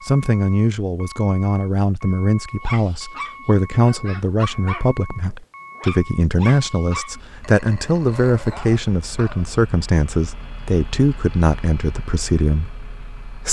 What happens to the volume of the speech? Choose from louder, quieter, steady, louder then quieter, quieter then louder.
steady.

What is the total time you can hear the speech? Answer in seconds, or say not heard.
13 s.